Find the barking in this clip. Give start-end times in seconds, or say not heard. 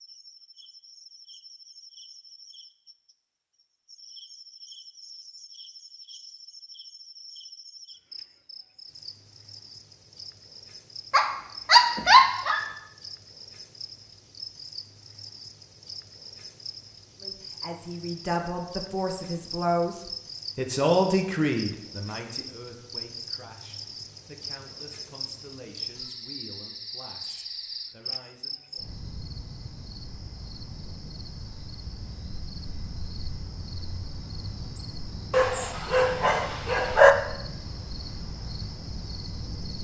11.1-12.7, 35.3-37.1.